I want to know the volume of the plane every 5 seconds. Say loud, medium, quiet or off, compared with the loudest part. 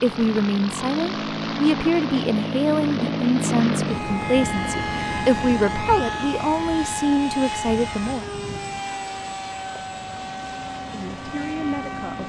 loud, loud, medium.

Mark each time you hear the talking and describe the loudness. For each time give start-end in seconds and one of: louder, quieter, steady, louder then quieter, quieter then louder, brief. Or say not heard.
0.0-8.4 steady
10.9-12.2 brief.